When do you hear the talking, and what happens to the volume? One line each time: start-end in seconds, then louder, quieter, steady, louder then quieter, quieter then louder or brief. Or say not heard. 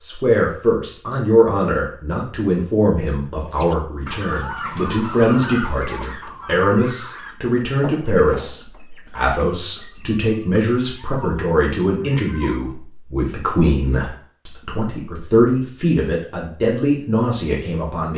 0.0-18.1 steady.